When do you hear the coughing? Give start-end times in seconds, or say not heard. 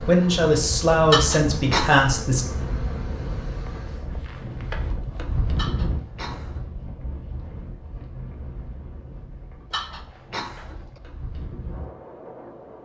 1.1-2.1, 5.5-6.7, 9.7-11.0.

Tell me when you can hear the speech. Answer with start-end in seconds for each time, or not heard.
0.1-2.5.